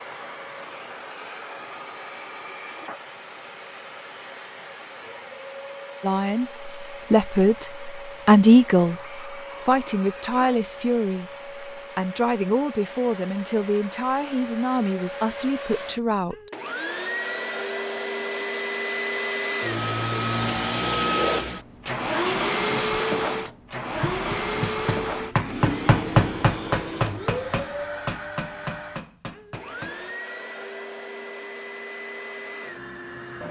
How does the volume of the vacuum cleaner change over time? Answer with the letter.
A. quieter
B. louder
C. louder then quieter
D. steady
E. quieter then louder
C.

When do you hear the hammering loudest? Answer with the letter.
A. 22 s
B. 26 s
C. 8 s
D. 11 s
B.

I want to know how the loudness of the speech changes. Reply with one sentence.
The volume of the speech goes down.